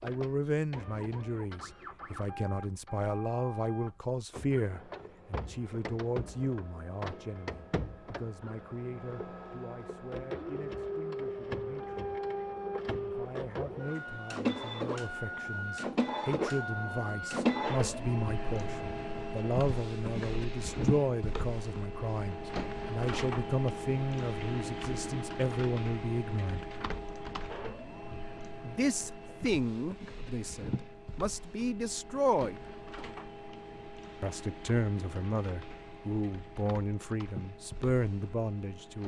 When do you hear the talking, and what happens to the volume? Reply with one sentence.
The talking can be heard from 0.0 to 12.1 s, getting quieter; from 13.0 to 26.9 s, getting louder; from 28.6 to 32.6 s, getting quieter then louder; and from 34.2 to 39.0 s, getting quieter then louder.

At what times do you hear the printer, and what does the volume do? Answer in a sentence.
The printer can be heard from 0.0 to 39.0 s, getting louder then quieter.